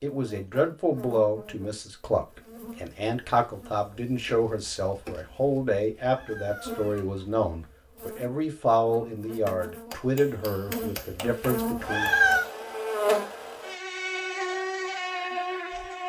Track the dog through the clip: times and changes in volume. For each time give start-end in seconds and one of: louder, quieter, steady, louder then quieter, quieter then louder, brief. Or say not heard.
not heard.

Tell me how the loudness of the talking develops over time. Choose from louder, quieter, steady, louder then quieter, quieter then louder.
steady.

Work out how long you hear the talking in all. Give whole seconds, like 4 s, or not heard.
12 s.